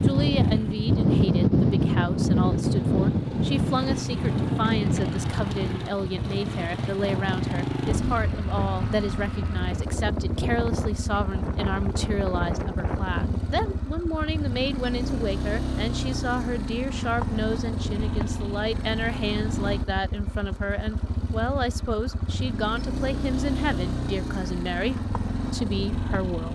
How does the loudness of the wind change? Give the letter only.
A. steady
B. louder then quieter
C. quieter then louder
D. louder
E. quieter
E.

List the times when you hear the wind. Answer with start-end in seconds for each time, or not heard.
0.0-13.8.